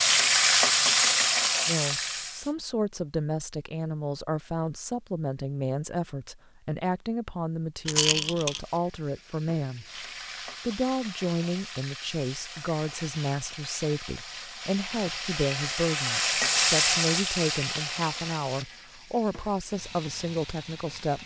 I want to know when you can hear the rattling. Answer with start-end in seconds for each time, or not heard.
7.8-8.6.